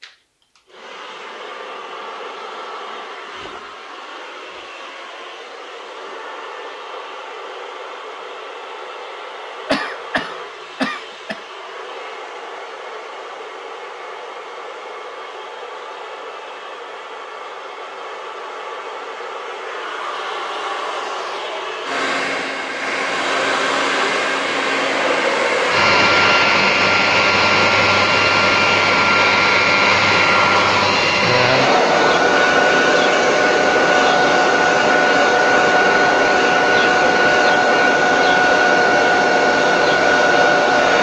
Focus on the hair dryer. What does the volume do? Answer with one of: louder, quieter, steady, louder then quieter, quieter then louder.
louder.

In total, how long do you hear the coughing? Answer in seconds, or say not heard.
2 s.